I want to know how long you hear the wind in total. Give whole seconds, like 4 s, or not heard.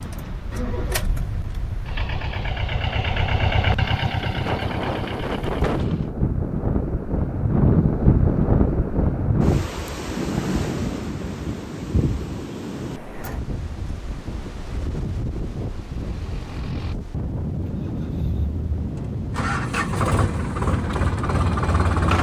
22 s.